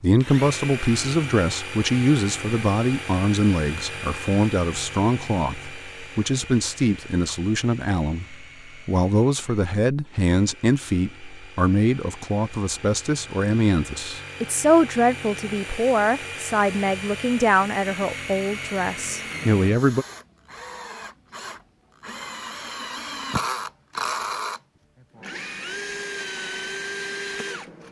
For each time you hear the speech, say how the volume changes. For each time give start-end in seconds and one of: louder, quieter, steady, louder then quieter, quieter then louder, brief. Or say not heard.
0.0-20.1 steady.